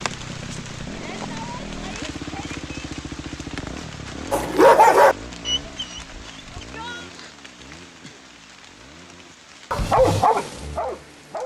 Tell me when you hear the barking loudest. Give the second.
5 s.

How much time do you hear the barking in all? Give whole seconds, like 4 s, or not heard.
4 s.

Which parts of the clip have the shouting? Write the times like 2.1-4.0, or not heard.
0.9-2.9, 6.5-7.1.